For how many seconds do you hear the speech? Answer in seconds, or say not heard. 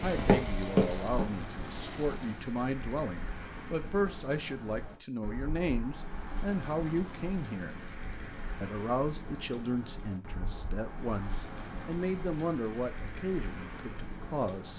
14 s.